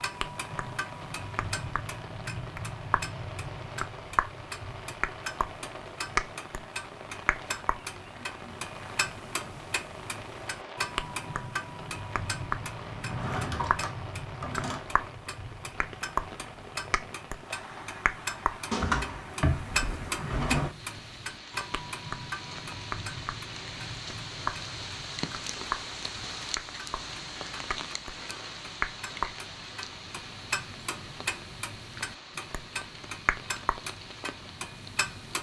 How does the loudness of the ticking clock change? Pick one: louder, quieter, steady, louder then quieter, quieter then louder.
steady.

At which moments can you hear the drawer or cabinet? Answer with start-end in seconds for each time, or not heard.
13.1-14.8, 18.7-20.7.